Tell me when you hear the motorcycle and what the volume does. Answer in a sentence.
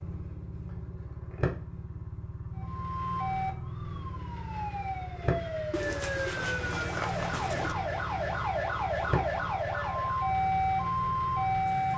You can hear the motorcycle from 0.0 to 11.9 s, at a steady volume.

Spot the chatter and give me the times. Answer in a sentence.
You can't hear the chatter here.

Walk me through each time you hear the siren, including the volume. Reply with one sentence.
You can hear the siren from 2.5 to 11.9 s, getting louder.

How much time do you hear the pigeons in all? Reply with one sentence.
You can hear the pigeons for 2 seconds altogether.